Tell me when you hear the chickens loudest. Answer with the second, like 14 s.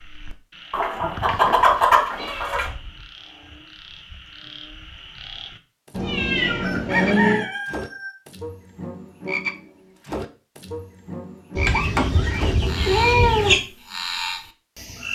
2 s.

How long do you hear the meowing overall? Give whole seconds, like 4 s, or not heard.
5 s.